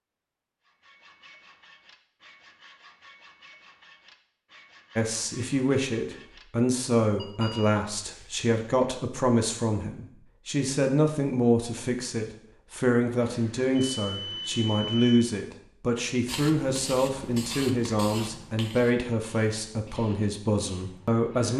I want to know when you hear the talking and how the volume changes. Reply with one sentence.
You can hear the talking from 5.0 to 21.5 s, at a steady volume.